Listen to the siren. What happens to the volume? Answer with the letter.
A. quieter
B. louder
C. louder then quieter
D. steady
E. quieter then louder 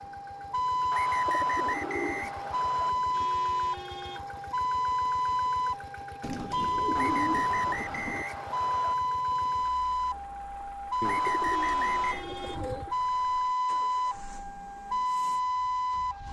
D.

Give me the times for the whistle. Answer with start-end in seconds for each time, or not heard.
0.9-3.0, 7.0-8.9, 11.0-12.2.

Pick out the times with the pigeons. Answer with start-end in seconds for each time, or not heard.
1.2-3.2, 6.2-8.2, 11.0-12.9.